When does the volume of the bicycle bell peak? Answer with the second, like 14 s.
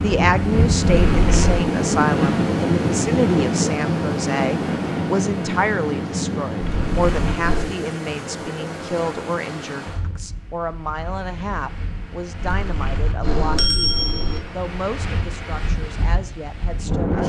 14 s.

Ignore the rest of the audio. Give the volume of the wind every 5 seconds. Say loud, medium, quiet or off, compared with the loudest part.
loud, medium, quiet, medium.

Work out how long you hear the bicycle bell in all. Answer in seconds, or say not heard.
4 s.